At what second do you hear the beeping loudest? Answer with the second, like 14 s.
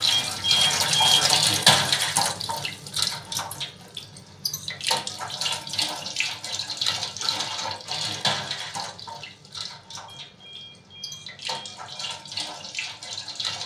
1 s.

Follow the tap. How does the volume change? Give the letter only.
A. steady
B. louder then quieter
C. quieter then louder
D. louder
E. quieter
E.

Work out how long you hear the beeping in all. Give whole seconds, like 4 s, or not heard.
3 s.